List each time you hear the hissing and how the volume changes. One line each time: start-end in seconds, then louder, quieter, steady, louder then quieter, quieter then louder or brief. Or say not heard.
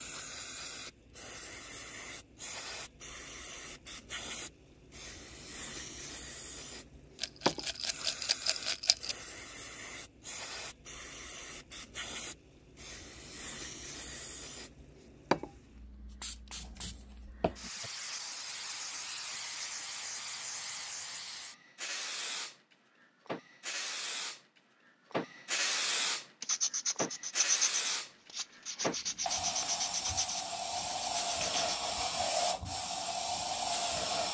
0.0-34.3 louder.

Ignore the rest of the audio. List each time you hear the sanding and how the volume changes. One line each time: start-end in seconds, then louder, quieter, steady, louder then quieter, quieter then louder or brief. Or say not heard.
26.4-31.8 quieter.